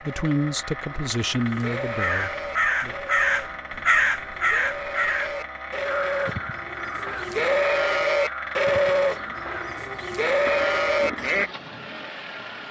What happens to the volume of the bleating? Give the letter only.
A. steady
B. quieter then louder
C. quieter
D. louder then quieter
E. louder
E.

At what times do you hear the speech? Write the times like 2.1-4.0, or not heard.
0.0-3.0.